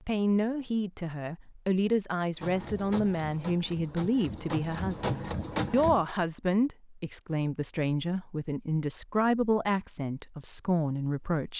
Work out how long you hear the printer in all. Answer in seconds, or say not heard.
4 s.